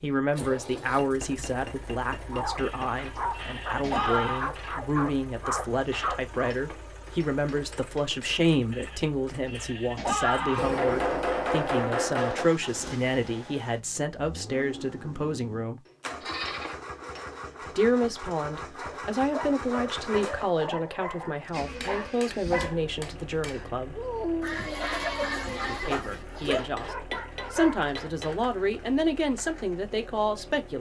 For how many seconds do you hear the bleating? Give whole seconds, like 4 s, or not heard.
7 s.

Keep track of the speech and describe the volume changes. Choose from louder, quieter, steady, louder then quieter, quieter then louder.
steady.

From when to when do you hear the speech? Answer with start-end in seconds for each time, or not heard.
0.0-15.8, 17.8-24.0, 25.6-30.7.